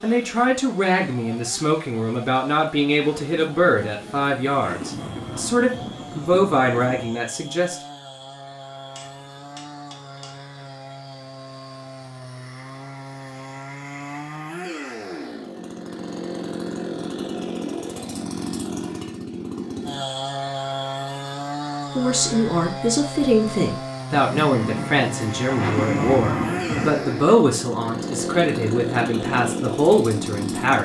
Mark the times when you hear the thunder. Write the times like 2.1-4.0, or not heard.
3.1-7.2, 24.1-27.0.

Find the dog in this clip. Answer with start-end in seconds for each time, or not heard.
not heard.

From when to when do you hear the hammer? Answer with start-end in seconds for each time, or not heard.
8.9-10.4.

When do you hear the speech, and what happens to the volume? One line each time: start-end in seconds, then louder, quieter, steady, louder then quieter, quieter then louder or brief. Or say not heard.
0.0-7.8 steady
21.9-30.7 steady.